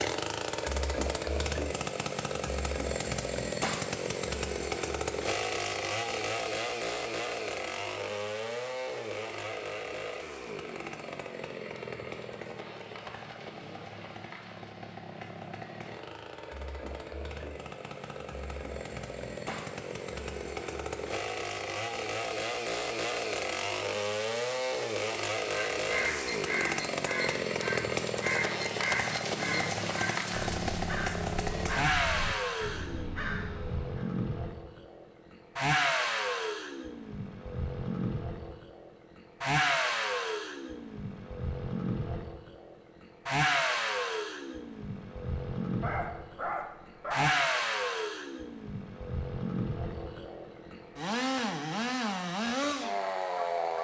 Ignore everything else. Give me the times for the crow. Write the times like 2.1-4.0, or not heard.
25.5-34.0.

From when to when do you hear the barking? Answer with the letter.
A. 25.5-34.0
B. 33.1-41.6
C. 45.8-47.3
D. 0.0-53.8
C.